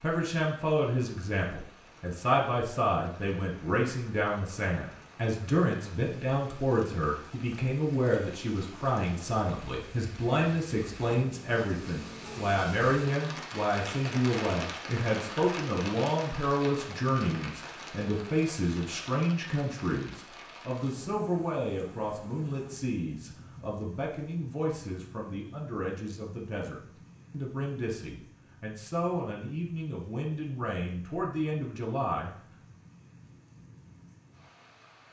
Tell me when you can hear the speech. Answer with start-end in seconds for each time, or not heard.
0.0-32.3.